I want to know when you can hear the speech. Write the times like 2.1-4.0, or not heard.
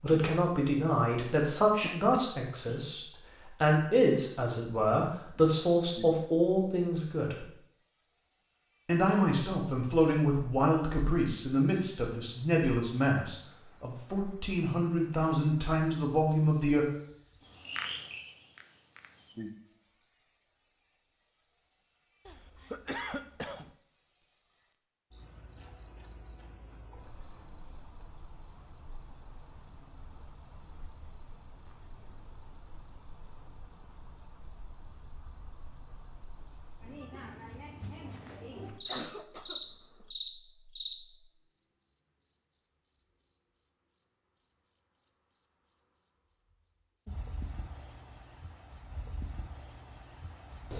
0.0-7.5, 8.8-16.9.